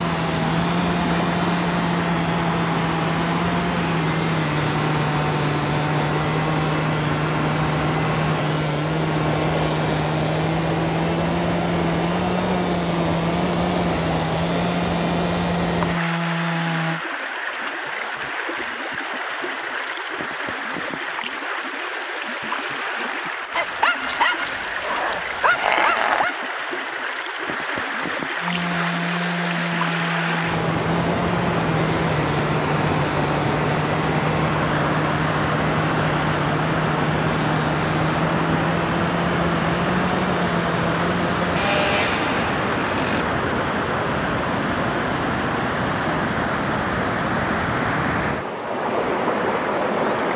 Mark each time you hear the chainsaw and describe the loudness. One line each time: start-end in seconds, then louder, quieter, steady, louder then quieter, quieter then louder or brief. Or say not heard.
0.0-17.0 steady
28.4-43.3 steady.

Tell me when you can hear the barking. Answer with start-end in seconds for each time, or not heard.
23.5-26.4.